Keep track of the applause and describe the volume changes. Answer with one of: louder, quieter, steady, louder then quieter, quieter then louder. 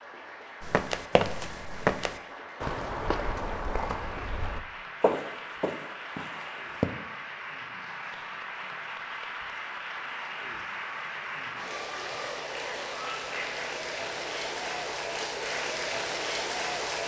louder.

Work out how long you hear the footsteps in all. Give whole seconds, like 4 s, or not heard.
6 s.